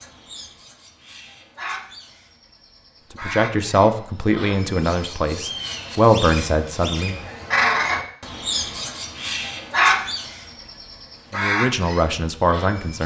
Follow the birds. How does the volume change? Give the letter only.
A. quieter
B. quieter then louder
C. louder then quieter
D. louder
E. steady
C.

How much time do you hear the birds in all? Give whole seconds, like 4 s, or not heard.
13 s.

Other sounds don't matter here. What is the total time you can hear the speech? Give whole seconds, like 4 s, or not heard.
6 s.